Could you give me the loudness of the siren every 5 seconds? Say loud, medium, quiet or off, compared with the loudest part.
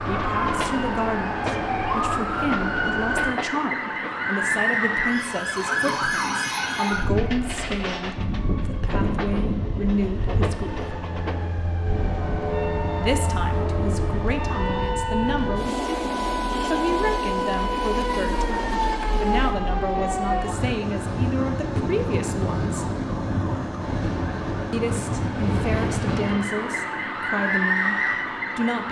loud, loud, medium, loud, loud, loud.